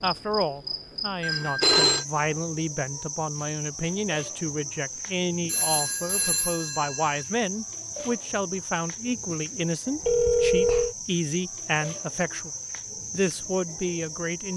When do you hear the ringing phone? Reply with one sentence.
The ringing phone can be heard from 1.2 to 2.0 s, from 5.5 to 7.2 s and from 10.0 to 10.9 s.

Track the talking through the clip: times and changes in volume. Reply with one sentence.
You can hear the talking from 0.0 to 12.5 s, at a steady volume; and briefly from 13.1 to 14.5 s.